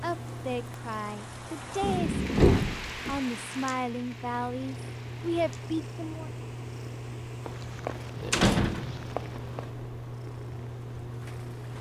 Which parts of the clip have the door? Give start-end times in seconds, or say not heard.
1.8-3.2, 7.5-9.7.